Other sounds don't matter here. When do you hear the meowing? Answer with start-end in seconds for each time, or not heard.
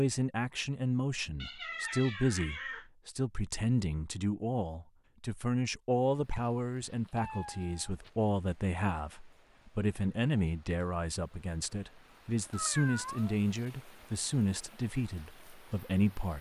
1.4-2.9, 6.3-8.1, 12.5-13.3.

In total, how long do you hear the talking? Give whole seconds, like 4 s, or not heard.
16 s.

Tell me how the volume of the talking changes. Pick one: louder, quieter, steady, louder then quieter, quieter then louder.
steady.